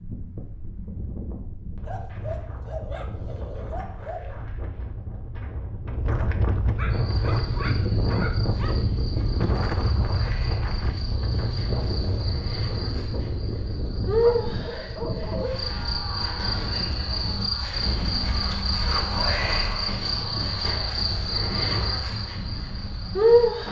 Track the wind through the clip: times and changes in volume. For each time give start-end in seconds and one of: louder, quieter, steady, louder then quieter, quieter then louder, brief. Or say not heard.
0.0-23.6 louder then quieter.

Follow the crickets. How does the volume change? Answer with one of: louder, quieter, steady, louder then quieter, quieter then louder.
louder.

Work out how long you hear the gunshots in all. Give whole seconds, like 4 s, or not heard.
2 s.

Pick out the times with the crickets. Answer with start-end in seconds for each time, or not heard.
6.9-23.6.